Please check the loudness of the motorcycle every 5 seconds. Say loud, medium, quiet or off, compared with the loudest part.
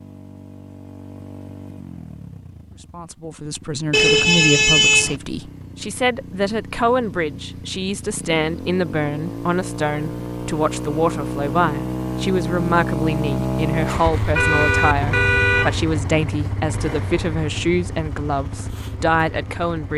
quiet, medium, loud, medium.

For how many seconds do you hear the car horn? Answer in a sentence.
The car horn can be heard for 3 seconds in total.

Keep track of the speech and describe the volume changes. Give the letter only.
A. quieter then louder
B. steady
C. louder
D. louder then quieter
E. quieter
B.